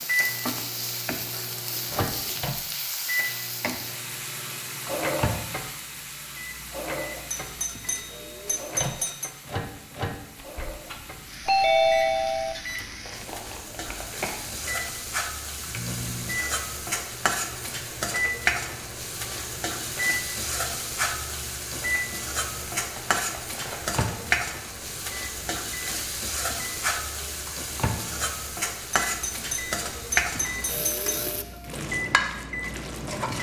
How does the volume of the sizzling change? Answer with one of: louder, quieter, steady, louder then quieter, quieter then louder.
quieter then louder.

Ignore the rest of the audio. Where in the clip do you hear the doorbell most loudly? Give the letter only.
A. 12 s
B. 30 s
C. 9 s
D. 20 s
A.